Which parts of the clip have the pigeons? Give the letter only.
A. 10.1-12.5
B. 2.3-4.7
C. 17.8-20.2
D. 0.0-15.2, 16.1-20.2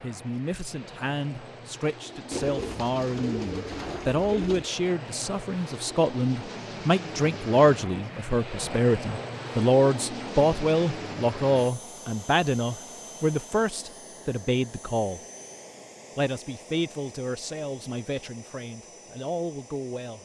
B.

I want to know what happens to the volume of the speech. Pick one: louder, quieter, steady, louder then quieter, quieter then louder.
louder then quieter.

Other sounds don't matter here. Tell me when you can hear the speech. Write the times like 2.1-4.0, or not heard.
0.0-15.2, 16.1-20.2.